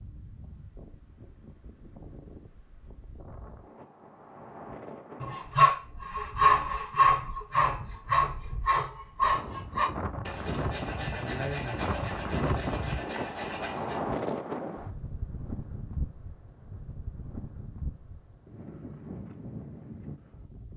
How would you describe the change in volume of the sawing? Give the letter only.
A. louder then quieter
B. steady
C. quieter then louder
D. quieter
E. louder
D.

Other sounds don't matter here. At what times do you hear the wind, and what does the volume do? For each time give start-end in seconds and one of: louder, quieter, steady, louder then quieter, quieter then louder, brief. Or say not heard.
0.0-20.7 louder then quieter.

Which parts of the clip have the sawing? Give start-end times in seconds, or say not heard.
5.2-14.0.